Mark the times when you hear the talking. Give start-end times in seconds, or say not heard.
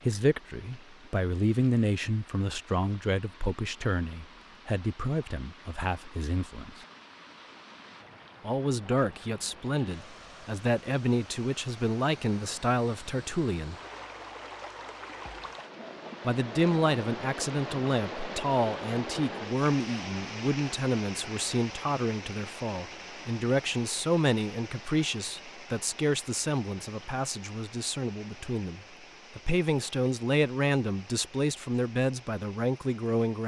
0.0-6.8, 8.4-13.8, 16.2-33.4.